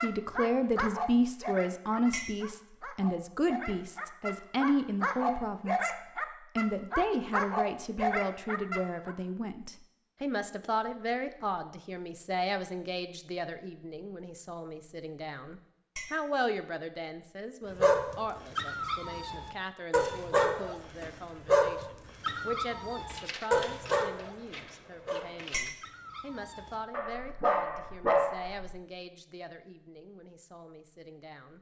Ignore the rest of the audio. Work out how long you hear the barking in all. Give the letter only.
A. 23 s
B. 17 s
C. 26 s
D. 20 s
D.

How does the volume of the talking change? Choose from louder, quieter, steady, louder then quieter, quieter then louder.
quieter.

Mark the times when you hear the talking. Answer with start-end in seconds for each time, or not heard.
0.0-5.9, 6.5-31.5.